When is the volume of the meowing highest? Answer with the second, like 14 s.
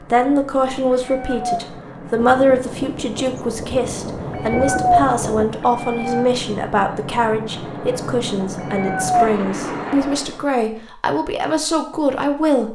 5 s.